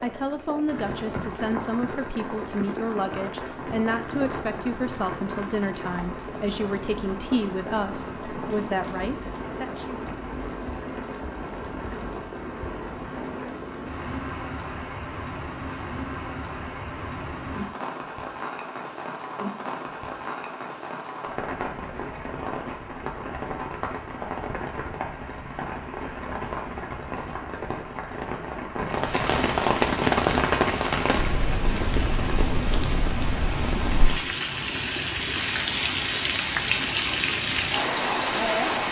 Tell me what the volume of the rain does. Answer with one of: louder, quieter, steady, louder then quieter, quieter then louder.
louder.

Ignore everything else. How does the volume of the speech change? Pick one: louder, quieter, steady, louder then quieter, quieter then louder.
steady.